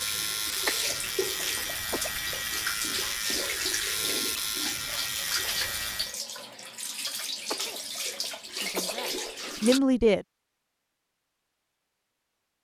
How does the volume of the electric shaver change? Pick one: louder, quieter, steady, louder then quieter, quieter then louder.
steady.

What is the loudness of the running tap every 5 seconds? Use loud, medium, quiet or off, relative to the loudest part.
loud, loud, off.